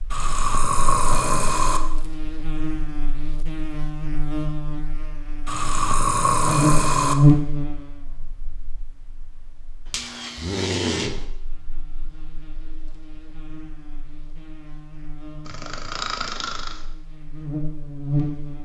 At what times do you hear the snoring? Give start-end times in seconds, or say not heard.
0.1-1.8, 5.5-7.2, 10.3-11.2, 15.4-16.8.